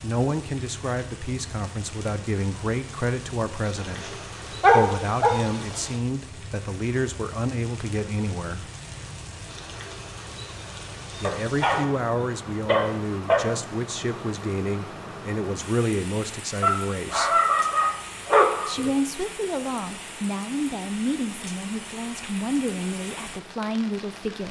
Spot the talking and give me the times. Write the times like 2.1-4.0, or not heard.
0.0-8.7, 11.2-17.4, 18.6-24.4.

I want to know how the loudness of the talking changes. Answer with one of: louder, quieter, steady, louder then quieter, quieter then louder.
steady.